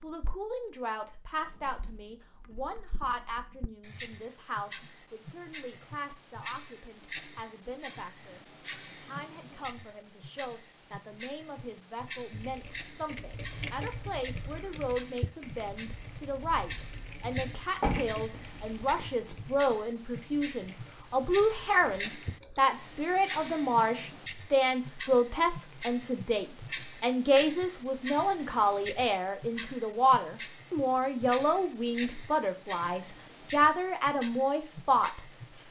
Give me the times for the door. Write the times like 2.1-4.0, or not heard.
17.8-19.4.